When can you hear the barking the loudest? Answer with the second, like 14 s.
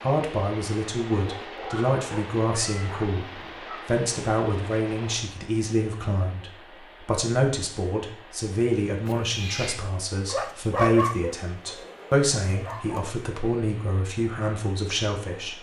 11 s.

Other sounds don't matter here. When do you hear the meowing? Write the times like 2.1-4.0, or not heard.
2.5-3.6, 9.1-9.8.